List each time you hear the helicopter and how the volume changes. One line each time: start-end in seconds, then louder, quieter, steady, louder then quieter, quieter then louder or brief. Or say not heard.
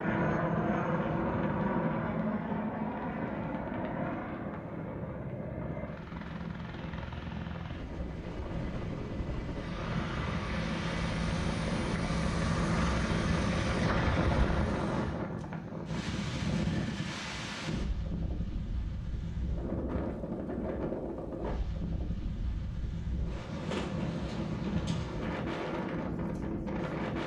0.0-15.2 quieter then louder.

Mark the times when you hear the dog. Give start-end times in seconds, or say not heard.
not heard.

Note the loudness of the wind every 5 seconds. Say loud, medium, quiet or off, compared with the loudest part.
loud, medium, loud, loud, loud, loud.